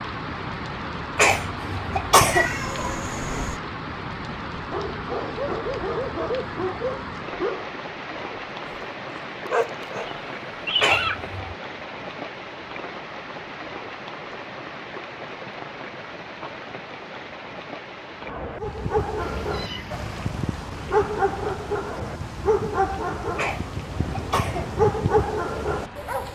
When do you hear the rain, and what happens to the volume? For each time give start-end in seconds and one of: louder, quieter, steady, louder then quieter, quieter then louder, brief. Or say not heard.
0.0-26.3 quieter.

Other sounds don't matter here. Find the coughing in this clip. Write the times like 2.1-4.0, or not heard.
1.1-2.5, 10.8-11.6, 23.4-24.6.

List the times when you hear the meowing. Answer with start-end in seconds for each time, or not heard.
2.2-3.6, 10.0-11.2, 19.2-20.4.